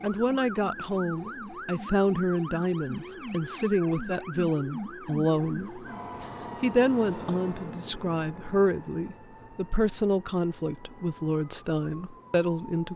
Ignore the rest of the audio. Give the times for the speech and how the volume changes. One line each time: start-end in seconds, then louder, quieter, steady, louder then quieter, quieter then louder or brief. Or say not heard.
0.0-12.9 steady.